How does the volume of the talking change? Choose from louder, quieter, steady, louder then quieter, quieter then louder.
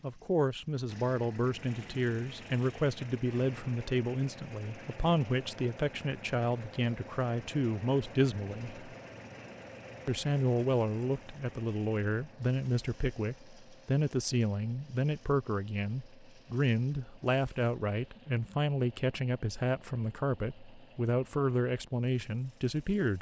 steady.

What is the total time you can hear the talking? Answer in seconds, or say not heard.
22 s.